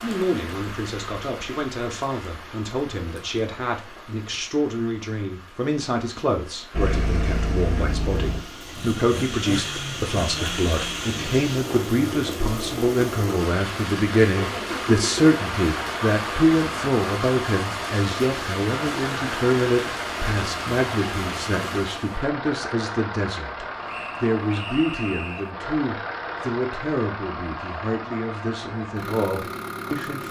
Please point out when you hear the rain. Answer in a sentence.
You can hear the rain from 0.0 to 22.2 s.